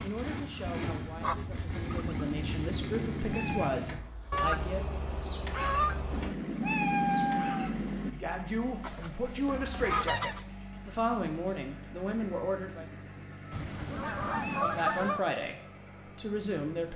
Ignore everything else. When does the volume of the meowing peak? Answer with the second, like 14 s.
7 s.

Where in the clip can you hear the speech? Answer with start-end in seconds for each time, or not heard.
0.0-4.8, 8.1-12.8, 14.6-16.9.